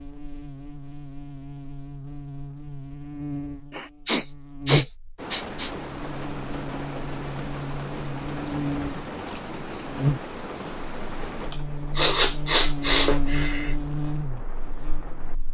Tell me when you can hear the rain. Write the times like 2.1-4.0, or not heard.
5.2-15.4.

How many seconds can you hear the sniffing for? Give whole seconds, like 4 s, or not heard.
4 s.